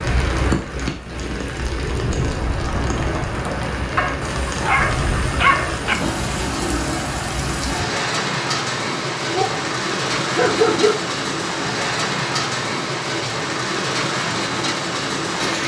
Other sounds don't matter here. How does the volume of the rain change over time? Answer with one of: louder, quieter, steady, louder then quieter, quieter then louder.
steady.